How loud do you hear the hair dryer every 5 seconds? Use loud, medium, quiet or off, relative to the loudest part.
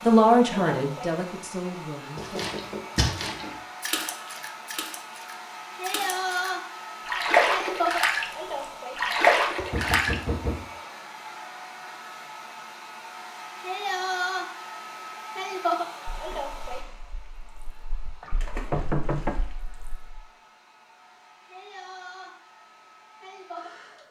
medium, loud, loud, loud, quiet.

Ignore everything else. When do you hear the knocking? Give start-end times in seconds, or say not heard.
2.1-3.6, 9.6-10.7, 18.2-19.4.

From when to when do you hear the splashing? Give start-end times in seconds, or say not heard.
2.1-8.2, 8.9-10.2, 16.1-20.2.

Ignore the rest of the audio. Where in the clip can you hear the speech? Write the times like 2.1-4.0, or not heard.
0.1-2.5.